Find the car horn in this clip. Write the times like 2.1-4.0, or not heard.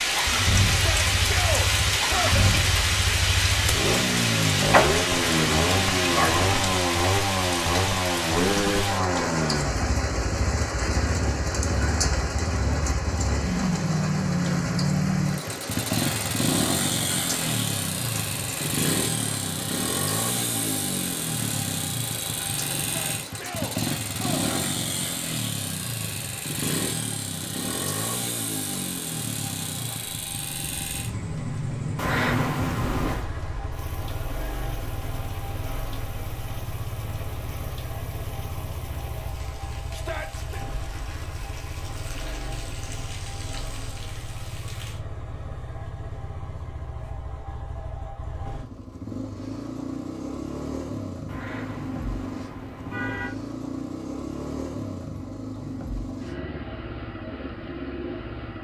5.1-6.8, 31.9-33.2, 51.2-53.3.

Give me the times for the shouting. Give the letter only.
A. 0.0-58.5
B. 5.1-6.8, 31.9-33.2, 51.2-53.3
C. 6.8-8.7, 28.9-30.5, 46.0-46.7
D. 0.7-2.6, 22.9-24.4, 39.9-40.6
D.